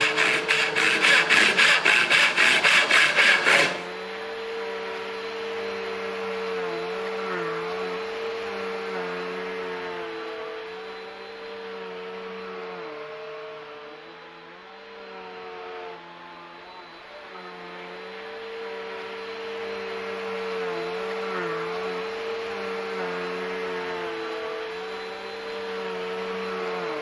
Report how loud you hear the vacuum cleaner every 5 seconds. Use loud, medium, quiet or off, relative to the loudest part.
loud, loud, medium, medium, loud, loud.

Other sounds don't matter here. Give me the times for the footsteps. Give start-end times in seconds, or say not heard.
not heard.